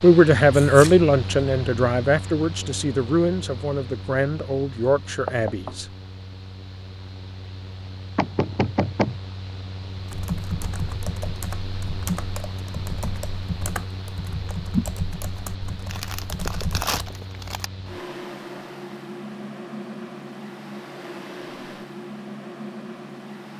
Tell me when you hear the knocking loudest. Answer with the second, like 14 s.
9 s.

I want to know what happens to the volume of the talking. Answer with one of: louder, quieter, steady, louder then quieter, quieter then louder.
quieter.